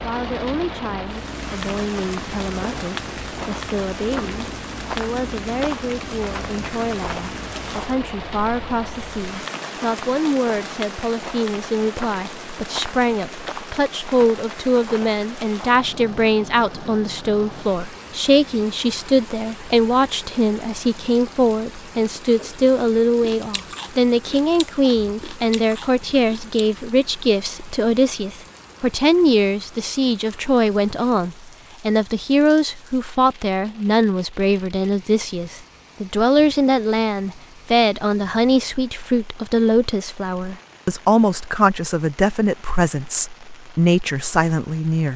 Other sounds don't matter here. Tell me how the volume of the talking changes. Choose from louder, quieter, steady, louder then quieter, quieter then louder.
louder.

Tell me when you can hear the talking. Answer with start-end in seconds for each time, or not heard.
0.0-45.1.